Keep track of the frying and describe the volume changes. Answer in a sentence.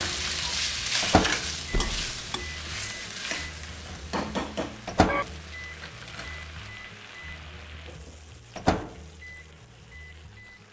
The loudness of the frying goes down.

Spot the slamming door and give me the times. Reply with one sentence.
The slamming door can be heard from 1.7 to 2.1 s.